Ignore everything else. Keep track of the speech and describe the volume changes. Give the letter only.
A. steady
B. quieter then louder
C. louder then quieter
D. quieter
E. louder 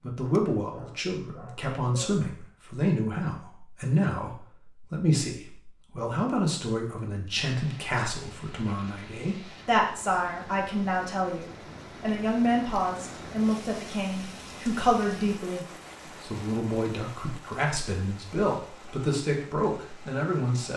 A.